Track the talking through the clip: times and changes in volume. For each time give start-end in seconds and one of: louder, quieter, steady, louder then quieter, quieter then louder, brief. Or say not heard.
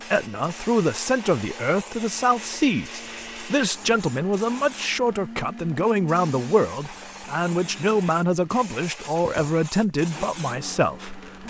0.1-11.4 steady.